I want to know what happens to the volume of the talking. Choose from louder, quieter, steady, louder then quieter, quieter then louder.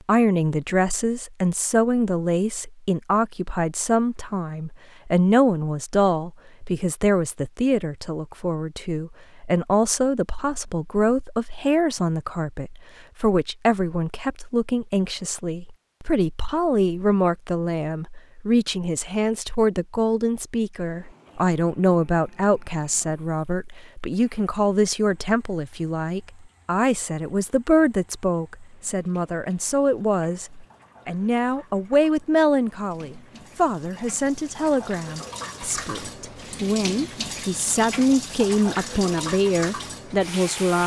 steady.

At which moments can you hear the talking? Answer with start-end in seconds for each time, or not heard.
0.1-40.8.